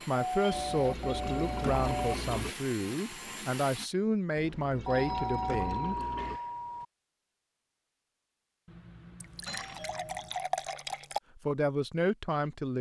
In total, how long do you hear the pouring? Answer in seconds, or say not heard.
6 s.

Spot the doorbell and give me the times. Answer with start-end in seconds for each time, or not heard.
0.1-2.1, 4.8-6.8, 8.7-10.4.